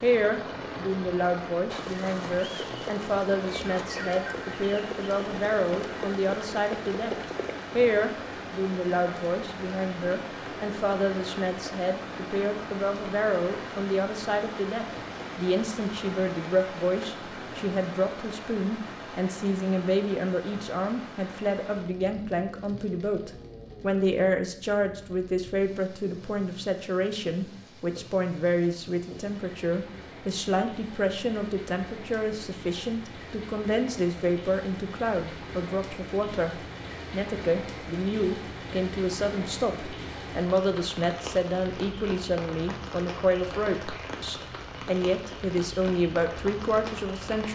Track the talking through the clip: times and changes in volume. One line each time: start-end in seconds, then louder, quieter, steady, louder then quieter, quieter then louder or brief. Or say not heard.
0.0-47.5 steady.